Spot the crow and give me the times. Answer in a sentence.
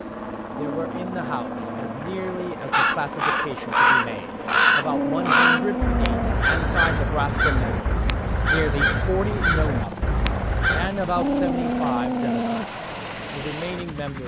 You can hear the crow from 2.7 to 10.9 s.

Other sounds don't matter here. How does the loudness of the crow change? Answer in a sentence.
The volume of the crow goes down.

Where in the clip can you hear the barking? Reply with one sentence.
You can hear the barking from 0.5 to 2.0 s, from 4.8 to 6.4 s and from 11.2 to 12.7 s.